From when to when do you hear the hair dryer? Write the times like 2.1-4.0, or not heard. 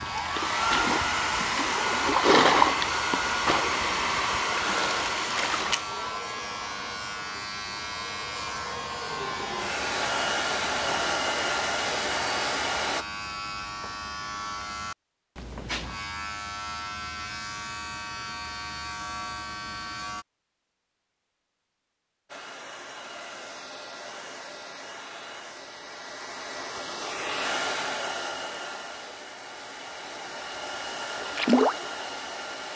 0.0-13.1, 22.2-32.7.